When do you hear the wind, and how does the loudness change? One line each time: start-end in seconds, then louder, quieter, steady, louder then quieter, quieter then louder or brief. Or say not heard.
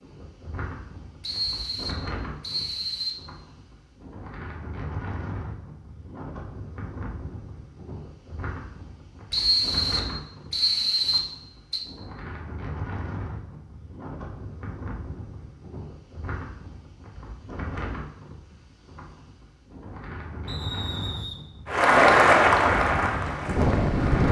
0.0-24.2 louder.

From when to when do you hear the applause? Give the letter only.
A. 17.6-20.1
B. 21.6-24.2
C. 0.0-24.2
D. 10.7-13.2
B.